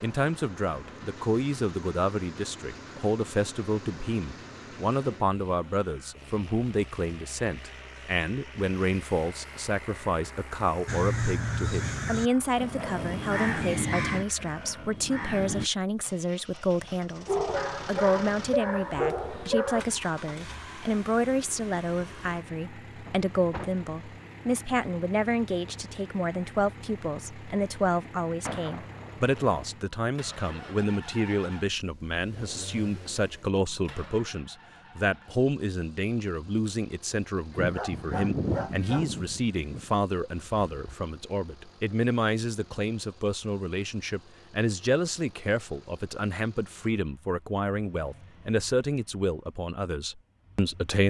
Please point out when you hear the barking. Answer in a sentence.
You can hear the barking from 17.2 to 19.9 s and from 37.7 to 39.1 s.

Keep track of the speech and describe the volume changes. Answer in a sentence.
The volume of the speech stays about the same.